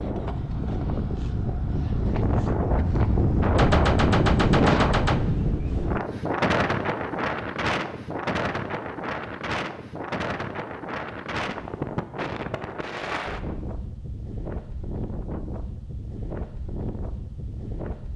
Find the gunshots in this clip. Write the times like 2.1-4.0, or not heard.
3.5-5.2.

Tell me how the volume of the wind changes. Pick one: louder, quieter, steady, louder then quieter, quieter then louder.
quieter.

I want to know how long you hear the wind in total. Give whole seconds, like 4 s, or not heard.
18 s.